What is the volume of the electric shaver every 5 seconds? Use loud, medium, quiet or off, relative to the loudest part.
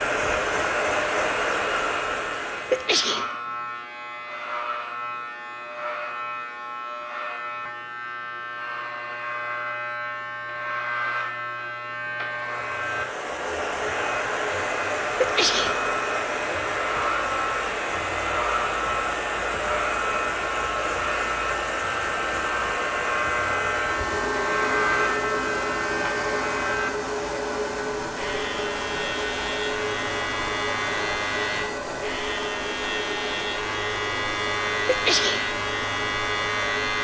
medium, medium, loud, loud, loud, loud, loud, loud.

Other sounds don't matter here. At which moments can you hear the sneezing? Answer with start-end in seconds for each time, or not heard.
2.7-3.3, 15.2-15.8, 34.9-35.5.